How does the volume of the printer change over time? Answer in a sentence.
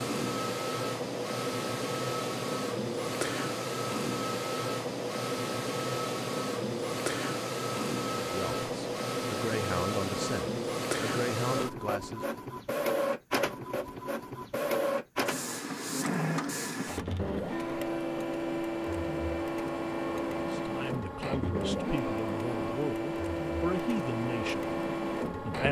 The volume of the printer stays about the same.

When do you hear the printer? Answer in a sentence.
The printer can be heard from 0.0 to 25.6 s.